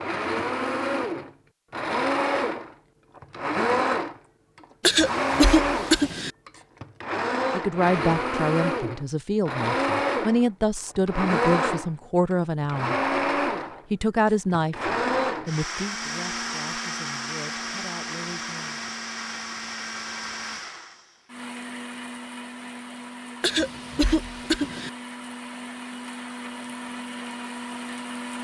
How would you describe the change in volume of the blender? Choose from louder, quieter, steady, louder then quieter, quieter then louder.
quieter.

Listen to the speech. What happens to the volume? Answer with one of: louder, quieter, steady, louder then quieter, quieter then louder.
quieter.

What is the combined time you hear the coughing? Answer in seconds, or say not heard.
3 s.